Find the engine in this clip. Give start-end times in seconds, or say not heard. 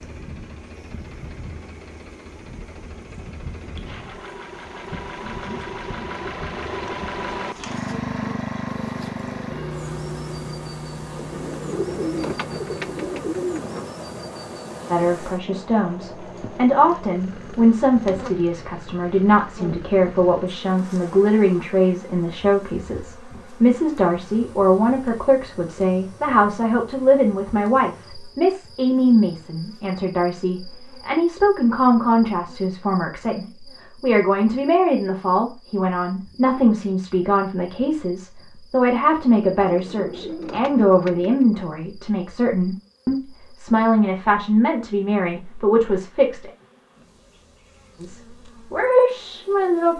0.0-20.6.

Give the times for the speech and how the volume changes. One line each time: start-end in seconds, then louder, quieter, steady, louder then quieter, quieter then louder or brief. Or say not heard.
14.9-46.5 steady
48.0-49.9 brief.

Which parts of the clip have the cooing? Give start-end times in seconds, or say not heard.
11.2-13.9, 39.6-41.5.